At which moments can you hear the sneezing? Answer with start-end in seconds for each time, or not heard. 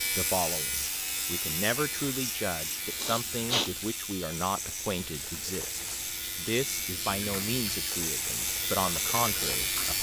2.8-3.7.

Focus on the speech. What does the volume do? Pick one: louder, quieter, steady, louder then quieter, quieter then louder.
steady.